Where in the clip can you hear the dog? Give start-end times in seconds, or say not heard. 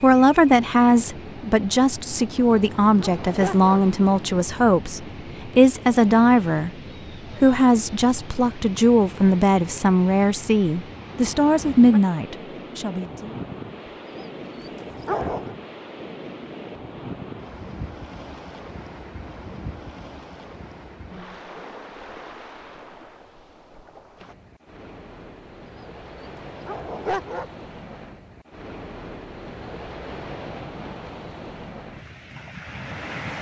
3.0-3.8, 15.1-15.6, 26.6-27.5.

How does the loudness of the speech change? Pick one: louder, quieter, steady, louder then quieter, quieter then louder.
steady.